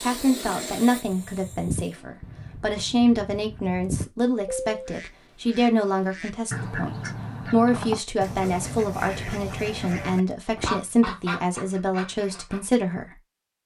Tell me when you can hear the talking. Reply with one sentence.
You can hear the talking from 0.0 to 13.2 s.